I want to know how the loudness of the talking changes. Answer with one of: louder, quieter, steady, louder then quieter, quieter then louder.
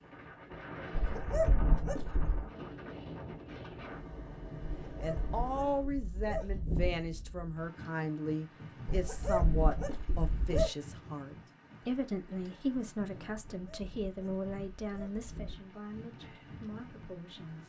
quieter.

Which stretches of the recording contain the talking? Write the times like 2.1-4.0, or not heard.
5.0-17.6.